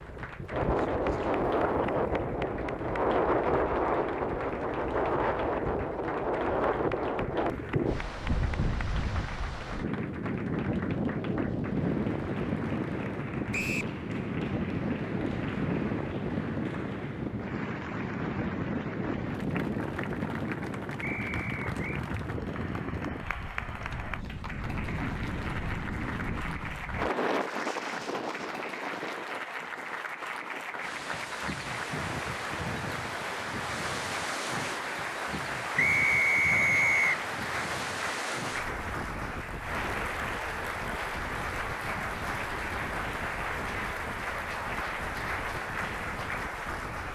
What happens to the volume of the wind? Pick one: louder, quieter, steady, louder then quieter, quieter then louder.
quieter.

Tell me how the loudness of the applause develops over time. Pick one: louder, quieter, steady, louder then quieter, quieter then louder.
louder.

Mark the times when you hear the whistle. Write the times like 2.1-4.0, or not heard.
13.5-13.9, 21.0-21.8, 35.8-37.1.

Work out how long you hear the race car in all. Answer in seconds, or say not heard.
not heard.